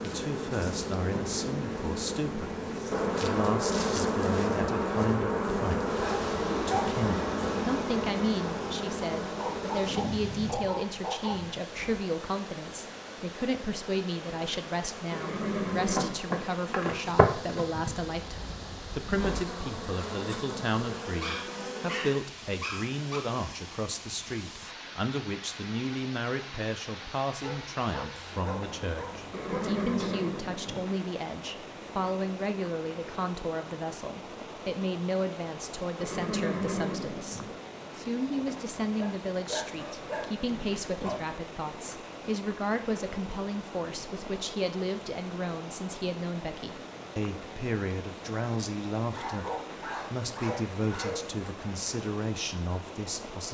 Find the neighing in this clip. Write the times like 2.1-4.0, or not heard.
15.1-16.2, 29.3-30.9, 36.0-37.5.